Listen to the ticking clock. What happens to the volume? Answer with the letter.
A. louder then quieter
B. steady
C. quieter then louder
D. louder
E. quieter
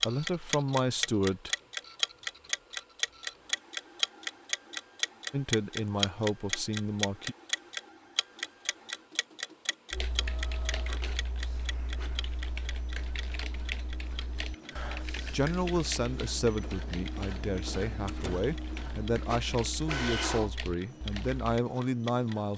E.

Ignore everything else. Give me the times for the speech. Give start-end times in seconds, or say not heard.
0.1-1.5, 5.3-7.3, 15.3-22.5.